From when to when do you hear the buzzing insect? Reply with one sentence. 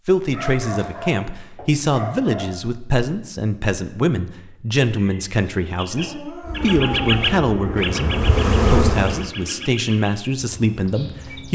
You can hear the buzzing insect from 6.5 to 9.3 s.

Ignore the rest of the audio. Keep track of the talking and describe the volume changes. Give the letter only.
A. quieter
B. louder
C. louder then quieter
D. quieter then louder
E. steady
E.